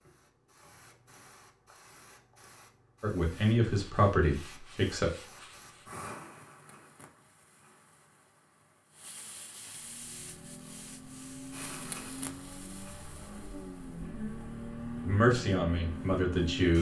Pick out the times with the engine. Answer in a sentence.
You can hear the engine from 9.7 to 16.7 s.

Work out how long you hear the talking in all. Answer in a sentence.
You can hear the talking for 4 seconds altogether.